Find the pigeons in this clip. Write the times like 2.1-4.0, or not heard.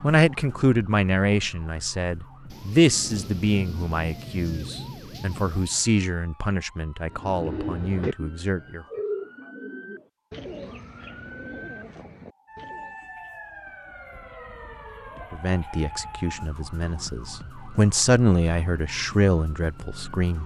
7.0-13.0.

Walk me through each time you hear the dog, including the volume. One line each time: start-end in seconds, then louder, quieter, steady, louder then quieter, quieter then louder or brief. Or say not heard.
not heard.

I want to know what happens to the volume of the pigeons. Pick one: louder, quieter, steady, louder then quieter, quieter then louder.
quieter.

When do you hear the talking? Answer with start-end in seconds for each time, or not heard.
0.0-8.8, 15.3-20.4.